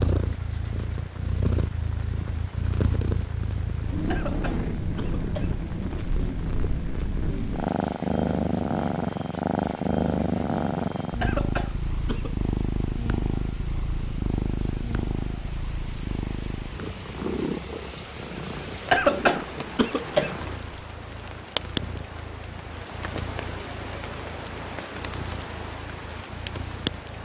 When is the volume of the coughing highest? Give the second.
19 s.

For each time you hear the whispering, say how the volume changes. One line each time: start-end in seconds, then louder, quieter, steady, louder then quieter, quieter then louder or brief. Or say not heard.
not heard.